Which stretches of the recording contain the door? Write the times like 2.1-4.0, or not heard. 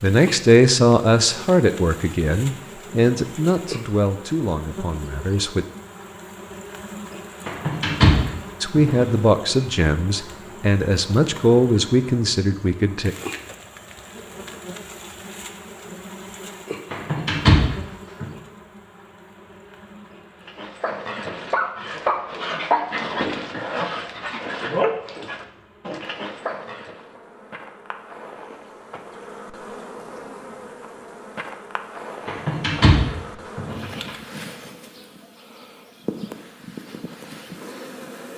7.5-9.1, 16.9-18.2, 32.2-34.1.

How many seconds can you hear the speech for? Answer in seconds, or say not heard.
10 s.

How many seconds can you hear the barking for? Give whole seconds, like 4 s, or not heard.
7 s.